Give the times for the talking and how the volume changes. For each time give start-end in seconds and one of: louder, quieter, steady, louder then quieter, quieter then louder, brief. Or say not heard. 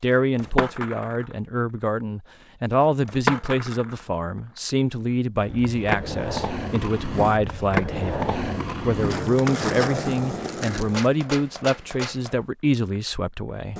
0.0-13.7 steady.